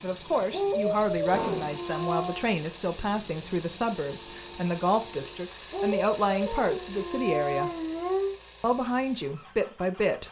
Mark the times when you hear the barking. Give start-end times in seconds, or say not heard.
0.5-2.5, 5.7-8.3.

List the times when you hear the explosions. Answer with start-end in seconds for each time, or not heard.
1.3-1.8.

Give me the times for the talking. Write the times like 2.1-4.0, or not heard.
0.0-7.7, 8.6-10.2.